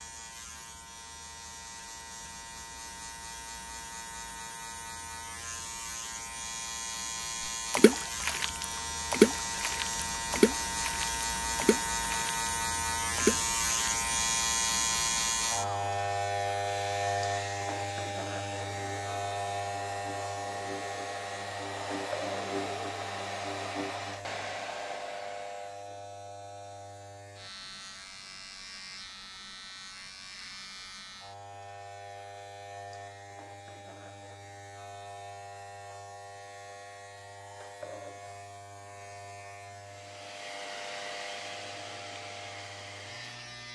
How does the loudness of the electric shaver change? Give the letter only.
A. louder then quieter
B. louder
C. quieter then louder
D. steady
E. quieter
A.